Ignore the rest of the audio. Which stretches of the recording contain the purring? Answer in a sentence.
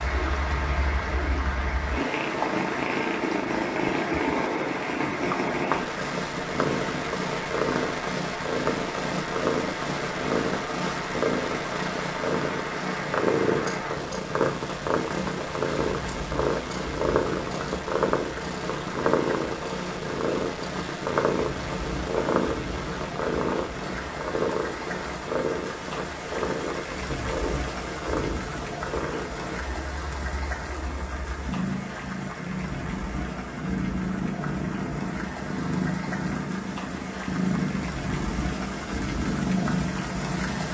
You can hear the purring from 0.0 to 40.6 s.